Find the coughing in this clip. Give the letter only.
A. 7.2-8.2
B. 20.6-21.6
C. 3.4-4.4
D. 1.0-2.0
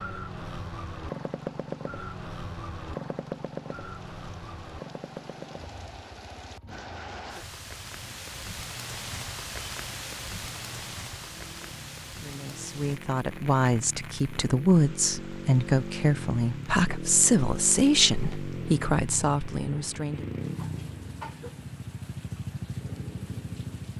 B.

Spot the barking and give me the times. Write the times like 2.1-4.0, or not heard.
not heard.